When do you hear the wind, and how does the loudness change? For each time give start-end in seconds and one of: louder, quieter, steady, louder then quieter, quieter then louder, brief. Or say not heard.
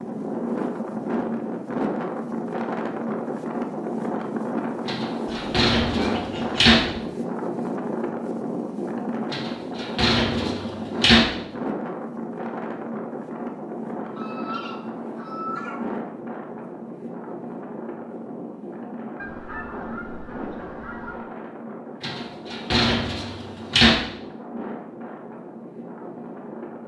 0.0-26.8 quieter.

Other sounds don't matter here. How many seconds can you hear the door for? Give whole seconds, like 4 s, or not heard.
6 s.